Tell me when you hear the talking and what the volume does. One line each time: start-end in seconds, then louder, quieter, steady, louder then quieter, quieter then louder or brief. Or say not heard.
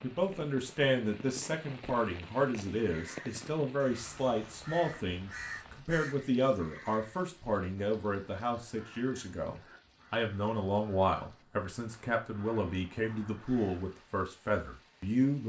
0.0-15.4 steady.